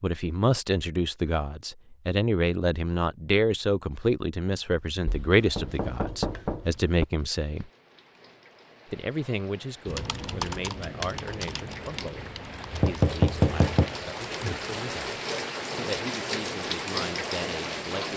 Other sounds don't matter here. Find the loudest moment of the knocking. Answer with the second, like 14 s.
13 s.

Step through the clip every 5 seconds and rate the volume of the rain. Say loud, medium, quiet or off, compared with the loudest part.
off, quiet, medium, loud.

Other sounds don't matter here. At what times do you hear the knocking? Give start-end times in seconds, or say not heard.
5.0-7.0, 12.7-13.9.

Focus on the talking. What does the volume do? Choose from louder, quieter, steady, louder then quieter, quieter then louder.
quieter.